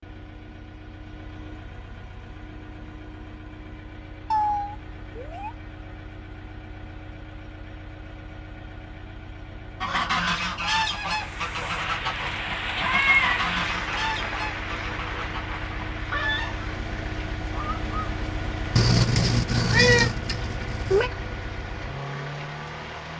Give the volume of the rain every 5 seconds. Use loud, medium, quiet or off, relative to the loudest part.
off, off, loud, medium, medium.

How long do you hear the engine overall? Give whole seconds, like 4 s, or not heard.
23 s.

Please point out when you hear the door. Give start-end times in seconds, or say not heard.
not heard.